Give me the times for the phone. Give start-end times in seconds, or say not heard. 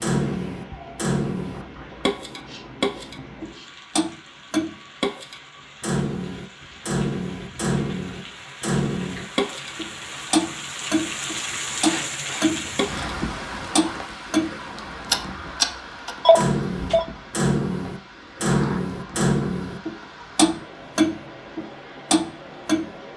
16.2-17.1.